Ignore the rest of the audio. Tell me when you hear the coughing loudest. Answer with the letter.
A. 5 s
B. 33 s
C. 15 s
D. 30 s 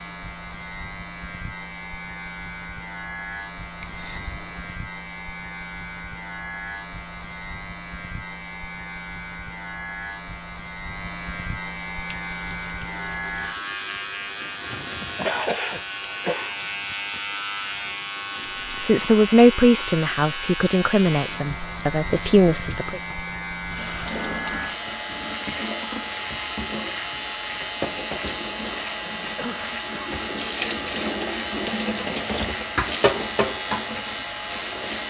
C.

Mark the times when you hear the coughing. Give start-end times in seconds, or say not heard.
3.8-4.8, 15.0-16.6, 29.4-29.9.